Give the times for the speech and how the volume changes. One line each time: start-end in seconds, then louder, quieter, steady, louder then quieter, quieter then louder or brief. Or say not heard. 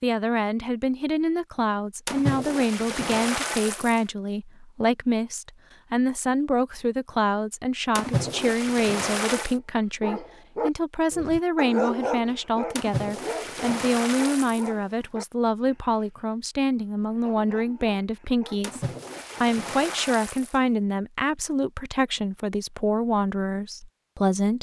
0.0-24.5 steady.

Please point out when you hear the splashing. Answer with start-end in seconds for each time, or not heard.
2.0-4.0, 8.0-9.6, 12.8-14.7, 18.6-20.6.